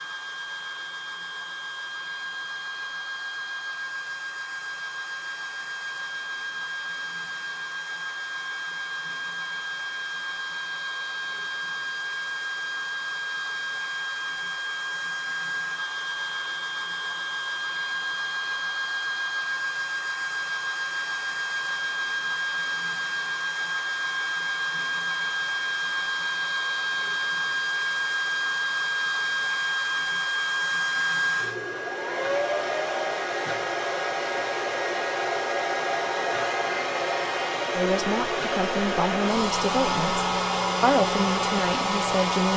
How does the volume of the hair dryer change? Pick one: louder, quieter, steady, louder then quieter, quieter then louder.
louder.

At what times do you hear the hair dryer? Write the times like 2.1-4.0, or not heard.
0.0-42.5.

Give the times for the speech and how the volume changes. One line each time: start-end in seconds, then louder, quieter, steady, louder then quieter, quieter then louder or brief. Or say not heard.
37.7-42.5 louder then quieter.